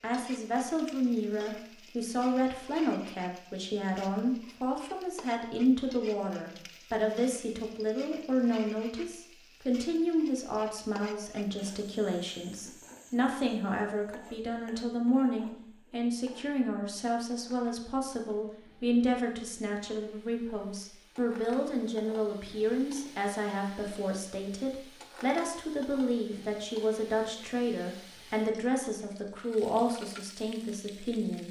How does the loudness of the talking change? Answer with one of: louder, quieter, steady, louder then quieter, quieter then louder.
steady.